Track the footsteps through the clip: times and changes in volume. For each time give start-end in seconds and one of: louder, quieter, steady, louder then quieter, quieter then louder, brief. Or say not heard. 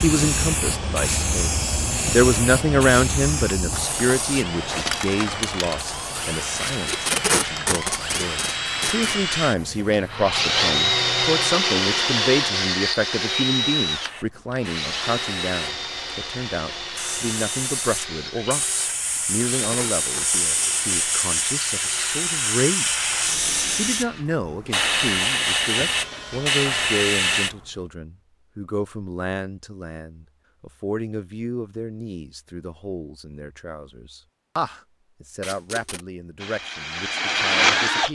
not heard.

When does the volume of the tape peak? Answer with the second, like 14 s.
7 s.